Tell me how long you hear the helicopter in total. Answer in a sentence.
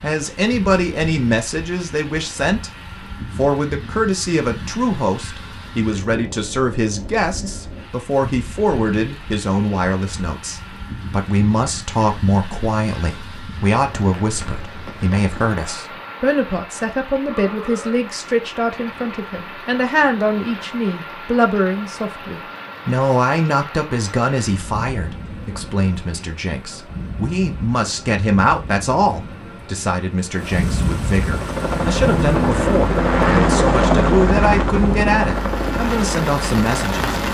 You can hear the helicopter for 6 seconds altogether.